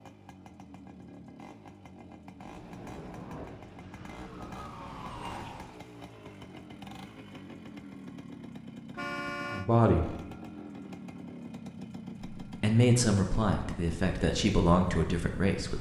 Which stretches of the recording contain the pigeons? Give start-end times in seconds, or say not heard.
not heard.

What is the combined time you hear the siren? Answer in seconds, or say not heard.
2 s.